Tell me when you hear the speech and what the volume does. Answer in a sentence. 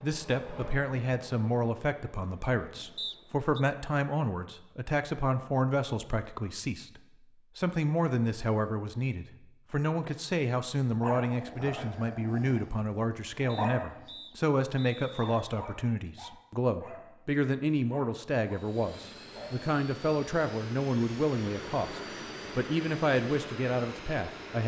You can hear the speech from 0.0 to 24.6 s, at a steady volume.